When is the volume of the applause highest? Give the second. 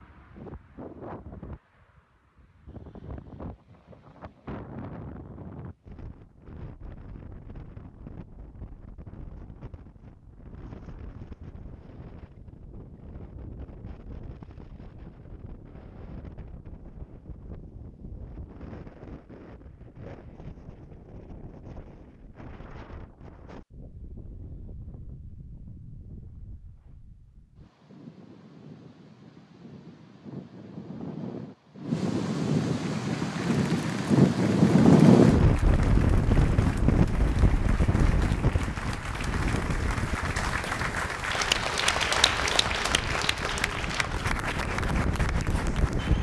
42 s.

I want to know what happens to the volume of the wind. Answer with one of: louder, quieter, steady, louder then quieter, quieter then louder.
louder then quieter.